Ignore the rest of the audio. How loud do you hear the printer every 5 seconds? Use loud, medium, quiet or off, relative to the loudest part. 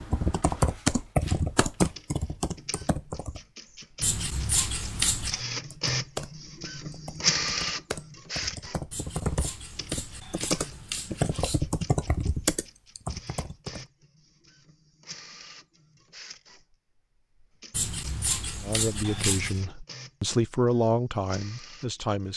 quiet, loud, quiet, quiet, quiet.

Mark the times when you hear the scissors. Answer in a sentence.
The scissors can be heard from 4.0 to 5.5 s, from 8.9 to 11.7 s and from 17.7 to 19.6 s.